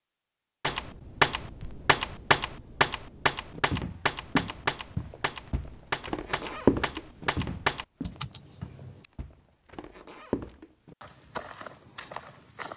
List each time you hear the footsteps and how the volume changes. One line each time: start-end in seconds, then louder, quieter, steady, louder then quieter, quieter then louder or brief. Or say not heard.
3.5-12.7 louder then quieter.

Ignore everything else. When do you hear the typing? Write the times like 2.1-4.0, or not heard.
0.6-9.1.